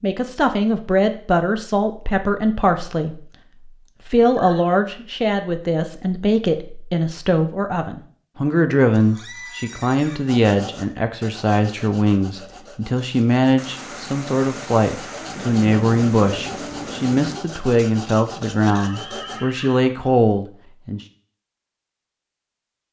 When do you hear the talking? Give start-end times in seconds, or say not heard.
0.0-3.2, 4.0-21.0.